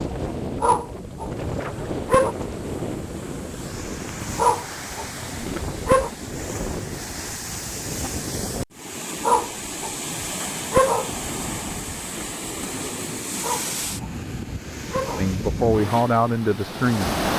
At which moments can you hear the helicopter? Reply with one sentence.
You can't hear the helicopter here.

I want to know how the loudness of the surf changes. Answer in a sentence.
The loudness of the surf stays about the same.